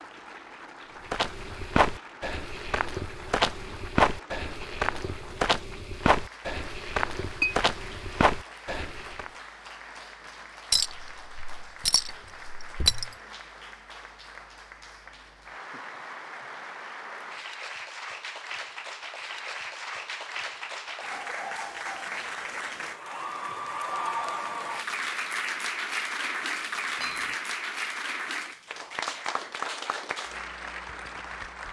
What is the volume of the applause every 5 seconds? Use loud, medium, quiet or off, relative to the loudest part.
quiet, quiet, quiet, medium, loud, loud, medium.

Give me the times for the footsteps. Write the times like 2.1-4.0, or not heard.
1.1-9.3.